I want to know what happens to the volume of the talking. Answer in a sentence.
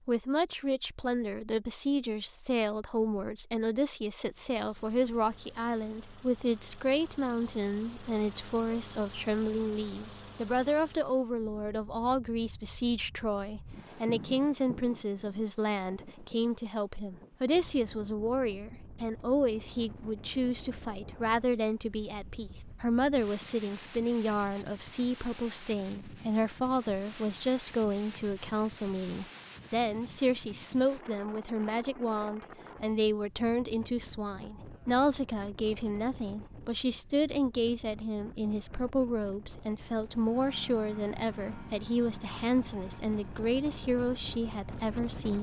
The loudness of the talking stays about the same.